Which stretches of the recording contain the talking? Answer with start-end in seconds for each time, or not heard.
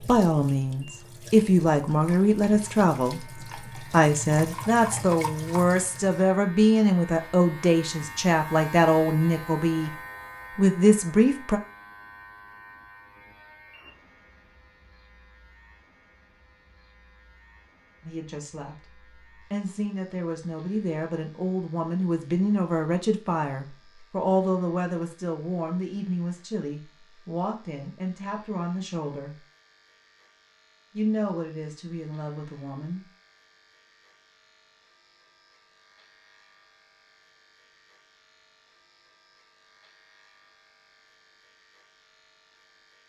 0.1-9.9, 10.6-11.6, 18.0-18.8, 19.5-29.4, 30.9-33.0.